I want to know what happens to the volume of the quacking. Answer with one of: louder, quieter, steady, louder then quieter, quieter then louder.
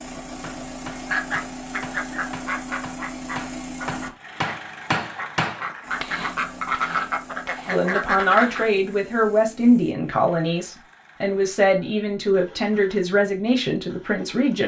quieter then louder.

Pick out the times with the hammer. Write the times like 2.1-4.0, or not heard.
0.4-8.9.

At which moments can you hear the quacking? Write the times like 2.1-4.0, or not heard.
1.1-8.7.